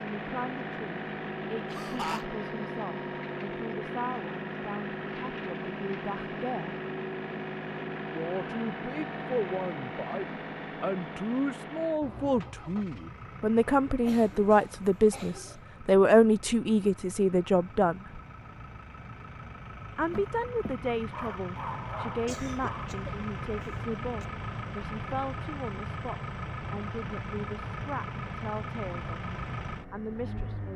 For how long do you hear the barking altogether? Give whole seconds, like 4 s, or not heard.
3 s.